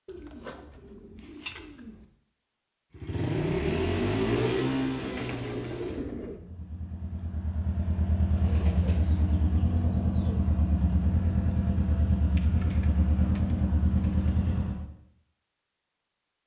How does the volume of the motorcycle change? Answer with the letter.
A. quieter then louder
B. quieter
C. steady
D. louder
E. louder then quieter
A.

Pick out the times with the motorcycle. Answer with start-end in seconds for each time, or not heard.
2.9-14.8.